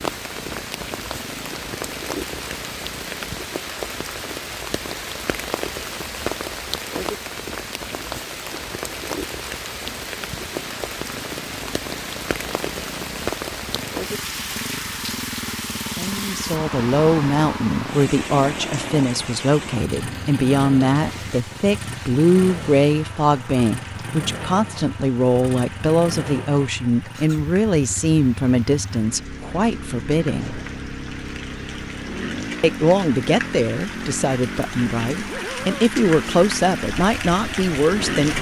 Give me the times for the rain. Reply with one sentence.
You can hear the rain from 0.0 to 38.3 s.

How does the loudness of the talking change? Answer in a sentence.
The loudness of the talking stays about the same.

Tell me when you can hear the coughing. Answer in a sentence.
You can't hear the coughing here.